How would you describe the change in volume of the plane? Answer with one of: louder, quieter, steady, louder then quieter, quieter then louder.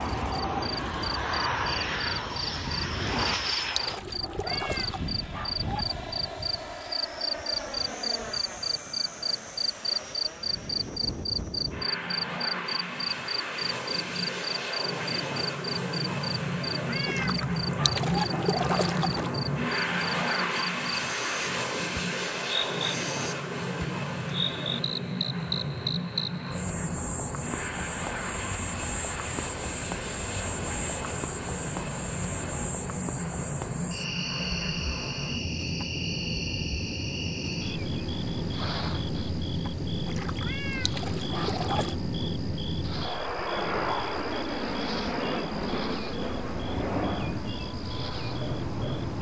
steady.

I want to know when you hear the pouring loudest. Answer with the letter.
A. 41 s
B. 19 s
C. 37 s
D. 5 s
B.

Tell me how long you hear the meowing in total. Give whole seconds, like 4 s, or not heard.
4 s.